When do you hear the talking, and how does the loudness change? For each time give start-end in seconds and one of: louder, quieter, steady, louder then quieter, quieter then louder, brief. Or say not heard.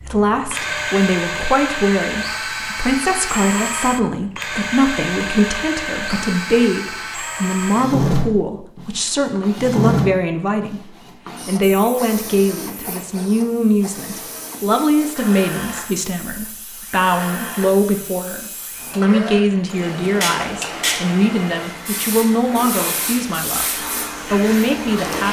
0.0-25.2 steady.